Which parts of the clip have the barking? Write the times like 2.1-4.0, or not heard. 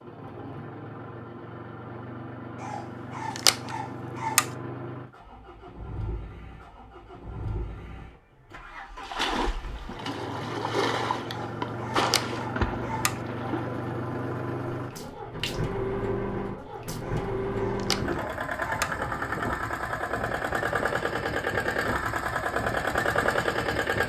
2.6-4.5, 11.2-13.2, 17.0-18.9.